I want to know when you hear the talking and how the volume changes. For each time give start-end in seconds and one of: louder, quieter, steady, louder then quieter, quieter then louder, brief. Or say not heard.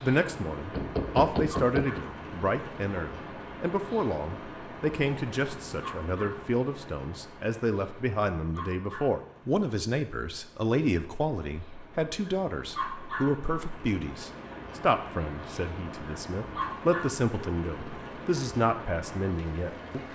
0.0-20.0 steady.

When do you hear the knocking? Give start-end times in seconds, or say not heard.
0.7-2.0.